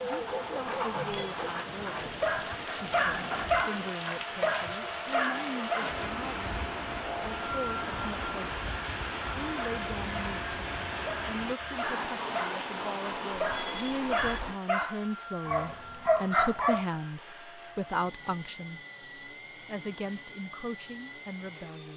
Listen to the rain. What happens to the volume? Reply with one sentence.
The loudness of the rain stays about the same.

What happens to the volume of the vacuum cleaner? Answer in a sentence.
The volume of the vacuum cleaner goes down.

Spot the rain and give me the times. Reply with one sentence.
You can hear the rain from 0.0 to 14.6 s.